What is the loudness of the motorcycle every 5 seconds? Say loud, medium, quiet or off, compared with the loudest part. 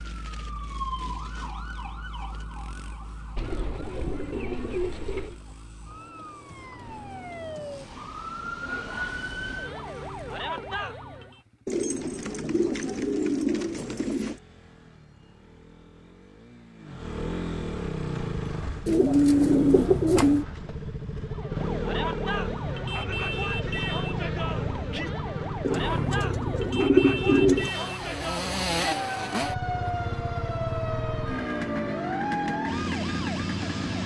quiet, quiet, quiet, loud, loud, loud, loud.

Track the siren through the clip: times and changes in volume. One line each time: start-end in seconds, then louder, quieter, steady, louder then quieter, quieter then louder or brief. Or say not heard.
0.0-11.4 quieter then louder
21.2-34.0 steady.